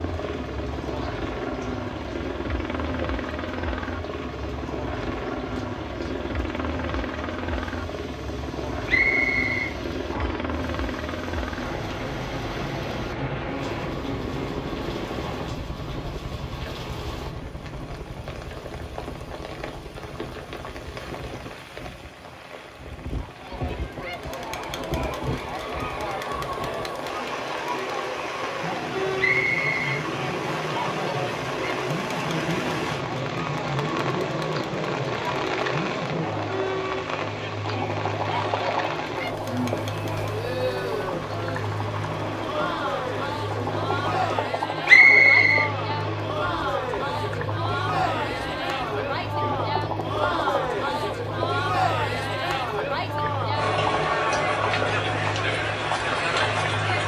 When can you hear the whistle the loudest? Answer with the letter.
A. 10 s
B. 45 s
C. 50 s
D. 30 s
B.